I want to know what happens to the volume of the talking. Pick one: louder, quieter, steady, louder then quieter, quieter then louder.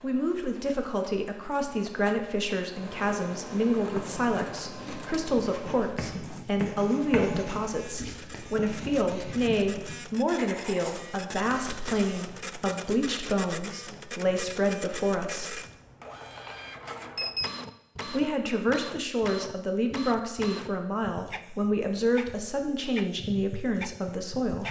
steady.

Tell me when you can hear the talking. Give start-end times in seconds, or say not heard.
0.0-15.6, 18.1-24.6.